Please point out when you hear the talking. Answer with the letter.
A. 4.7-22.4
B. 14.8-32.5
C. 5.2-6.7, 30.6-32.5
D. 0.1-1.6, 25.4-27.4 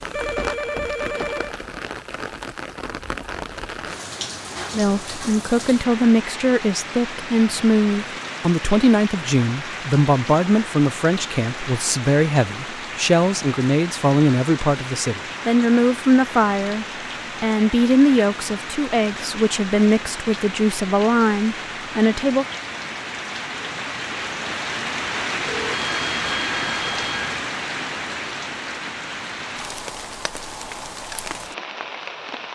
A.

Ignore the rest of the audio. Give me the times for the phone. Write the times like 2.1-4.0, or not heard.
0.1-1.6, 25.4-27.4.